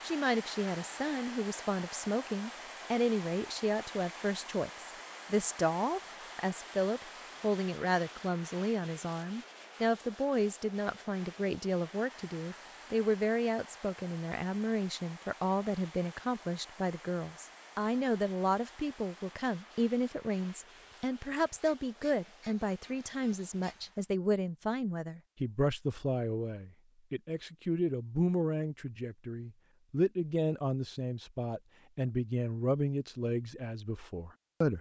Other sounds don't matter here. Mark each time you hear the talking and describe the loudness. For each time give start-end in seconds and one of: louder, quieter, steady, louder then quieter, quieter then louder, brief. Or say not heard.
0.0-34.7 steady.